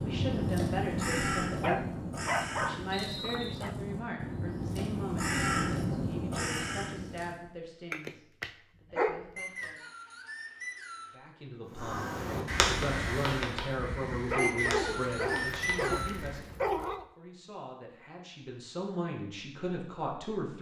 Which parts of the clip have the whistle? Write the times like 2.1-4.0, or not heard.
2.9-3.6, 9.3-11.2, 14.3-16.1.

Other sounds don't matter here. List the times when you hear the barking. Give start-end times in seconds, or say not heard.
1.6-3.8, 7.9-9.7, 14.2-17.1.